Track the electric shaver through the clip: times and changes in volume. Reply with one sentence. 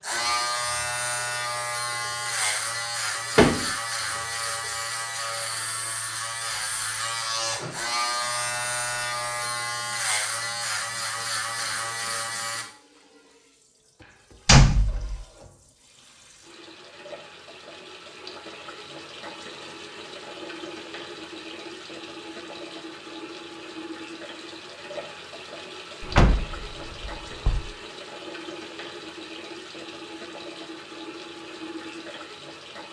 The electric shaver can be heard from 0.0 to 12.7 s, at a steady volume.